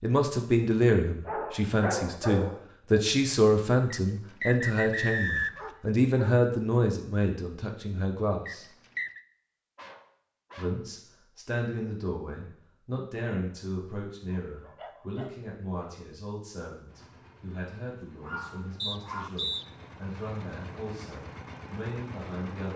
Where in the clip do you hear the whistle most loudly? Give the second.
5 s.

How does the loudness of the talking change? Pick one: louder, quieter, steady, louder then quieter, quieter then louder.
quieter.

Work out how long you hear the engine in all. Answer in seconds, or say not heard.
6 s.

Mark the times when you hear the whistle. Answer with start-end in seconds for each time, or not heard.
3.9-5.7, 8.4-9.2, 18.8-19.6.